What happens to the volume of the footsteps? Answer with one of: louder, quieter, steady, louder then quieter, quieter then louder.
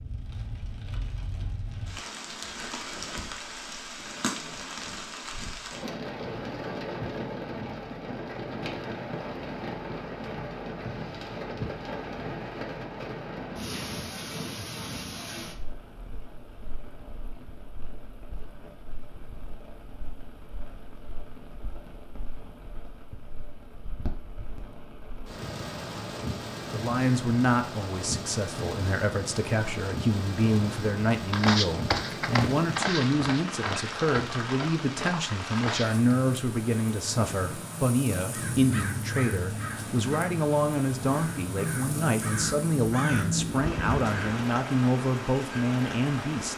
quieter.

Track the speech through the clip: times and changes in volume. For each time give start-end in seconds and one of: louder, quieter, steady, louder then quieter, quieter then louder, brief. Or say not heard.
26.6-46.5 steady.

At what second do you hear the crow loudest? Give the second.
43 s.